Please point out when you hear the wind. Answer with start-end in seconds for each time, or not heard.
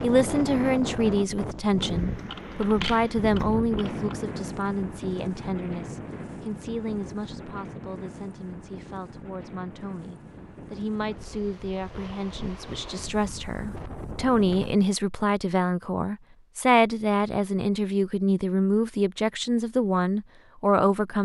0.0-14.9.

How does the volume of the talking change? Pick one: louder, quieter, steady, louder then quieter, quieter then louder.
quieter then louder.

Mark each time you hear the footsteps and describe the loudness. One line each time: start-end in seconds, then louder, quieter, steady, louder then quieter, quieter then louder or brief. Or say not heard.
not heard.